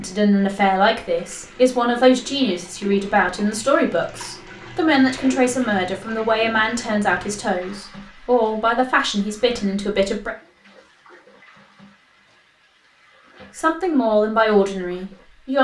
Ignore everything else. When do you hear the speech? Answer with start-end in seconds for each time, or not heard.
0.0-10.3, 13.6-15.5.